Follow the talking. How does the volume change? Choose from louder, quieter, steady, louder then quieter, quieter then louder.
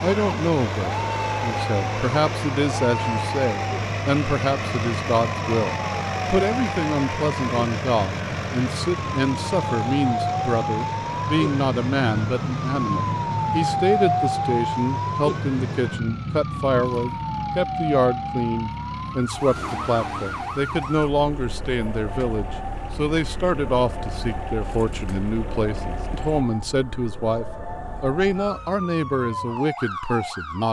steady.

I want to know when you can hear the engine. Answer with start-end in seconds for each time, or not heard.
0.0-26.4.